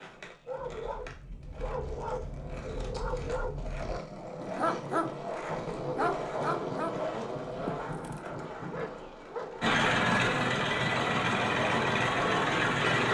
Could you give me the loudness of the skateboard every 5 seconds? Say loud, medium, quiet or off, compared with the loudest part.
medium, loud, loud.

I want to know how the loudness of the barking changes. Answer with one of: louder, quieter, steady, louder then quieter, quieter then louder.
louder then quieter.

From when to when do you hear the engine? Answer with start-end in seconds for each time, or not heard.
9.6-13.0.